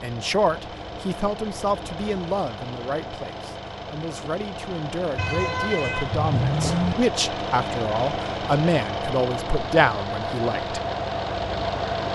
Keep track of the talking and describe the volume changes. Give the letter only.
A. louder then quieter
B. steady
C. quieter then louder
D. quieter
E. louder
C.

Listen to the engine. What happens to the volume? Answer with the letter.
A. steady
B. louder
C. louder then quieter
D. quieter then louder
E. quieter
B.